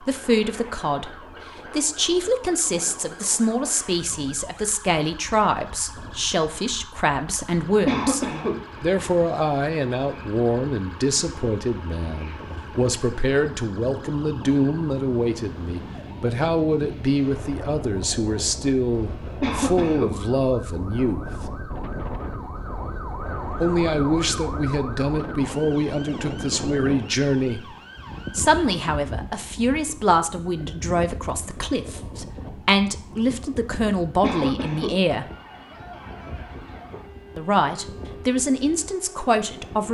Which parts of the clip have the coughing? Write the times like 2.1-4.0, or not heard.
7.8-8.6, 19.4-20.1, 34.2-35.0.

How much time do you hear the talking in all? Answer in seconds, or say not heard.
35 s.